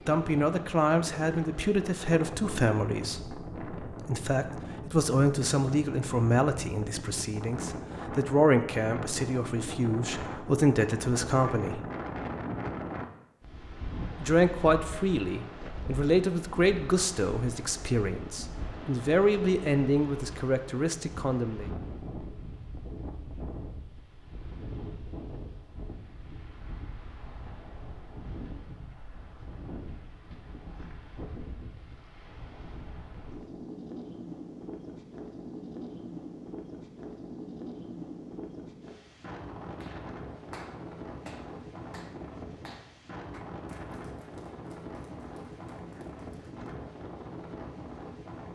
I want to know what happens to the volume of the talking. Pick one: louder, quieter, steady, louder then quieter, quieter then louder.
steady.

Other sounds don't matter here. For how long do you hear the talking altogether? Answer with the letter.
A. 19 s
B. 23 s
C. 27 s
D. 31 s
A.